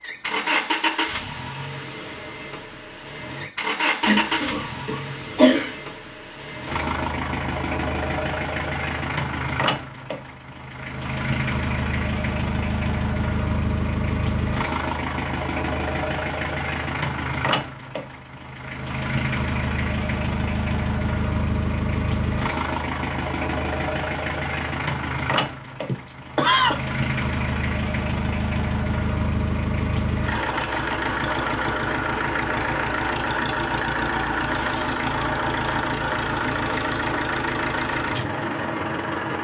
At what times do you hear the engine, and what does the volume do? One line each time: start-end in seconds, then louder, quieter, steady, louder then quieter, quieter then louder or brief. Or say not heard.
0.0-39.3 steady.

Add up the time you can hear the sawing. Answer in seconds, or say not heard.
not heard.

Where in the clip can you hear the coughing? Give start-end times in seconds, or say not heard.
4.0-5.8, 25.9-26.8.